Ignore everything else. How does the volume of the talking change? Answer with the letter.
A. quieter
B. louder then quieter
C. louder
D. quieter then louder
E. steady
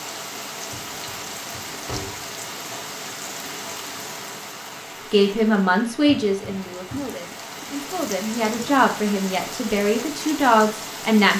D.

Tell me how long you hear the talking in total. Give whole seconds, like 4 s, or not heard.
6 s.